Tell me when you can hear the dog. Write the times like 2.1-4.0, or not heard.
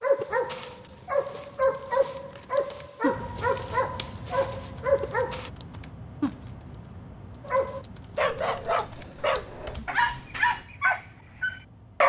0.0-5.5, 7.5-12.0.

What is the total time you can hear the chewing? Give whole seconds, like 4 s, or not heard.
not heard.